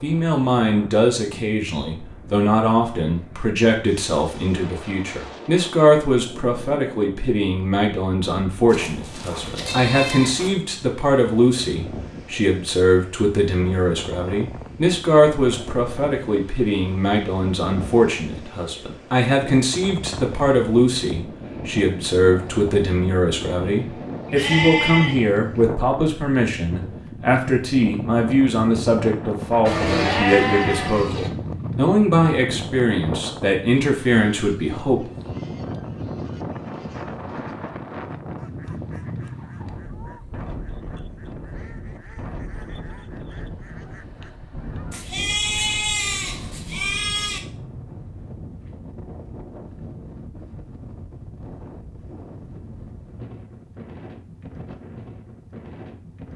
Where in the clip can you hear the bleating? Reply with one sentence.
The bleating can be heard from 8.7 to 10.5 s, from 24.2 to 25.6 s, from 29.6 to 31.3 s and from 44.9 to 47.4 s.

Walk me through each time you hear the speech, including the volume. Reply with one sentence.
The speech can be heard from 0.0 to 35.1 s, at a steady volume.